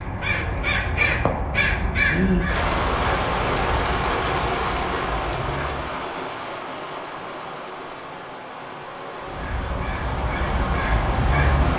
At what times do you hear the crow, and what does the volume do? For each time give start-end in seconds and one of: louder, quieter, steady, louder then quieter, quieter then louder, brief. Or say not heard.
0.0-6.0 quieter
9.2-11.7 brief.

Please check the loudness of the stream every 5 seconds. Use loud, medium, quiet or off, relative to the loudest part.
loud, medium, medium.